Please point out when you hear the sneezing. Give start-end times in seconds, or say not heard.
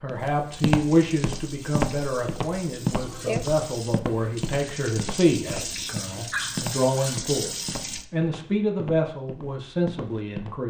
2.8-3.5, 5.5-7.0.